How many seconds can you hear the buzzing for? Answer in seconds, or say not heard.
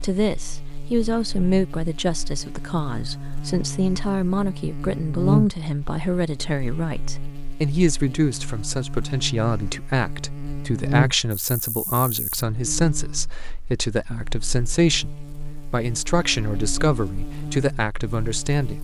19 s.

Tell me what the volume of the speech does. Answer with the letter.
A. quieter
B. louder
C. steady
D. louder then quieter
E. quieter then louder
C.